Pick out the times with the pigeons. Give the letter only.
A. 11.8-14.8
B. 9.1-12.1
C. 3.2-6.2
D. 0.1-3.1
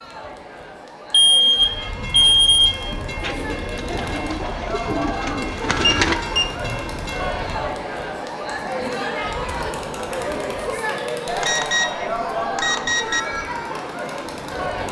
C.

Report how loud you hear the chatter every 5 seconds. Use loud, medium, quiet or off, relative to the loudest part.
medium, loud, loud.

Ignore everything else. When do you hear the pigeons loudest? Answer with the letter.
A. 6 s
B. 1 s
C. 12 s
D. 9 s
A.